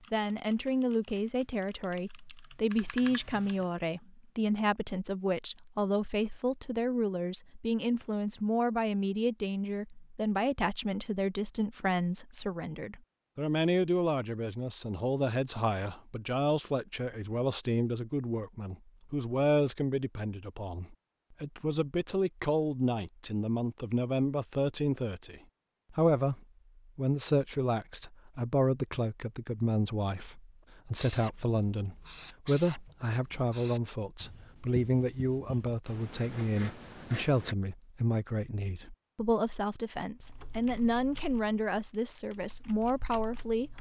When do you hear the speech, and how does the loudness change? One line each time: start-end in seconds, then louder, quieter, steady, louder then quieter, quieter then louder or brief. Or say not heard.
0.1-43.7 steady.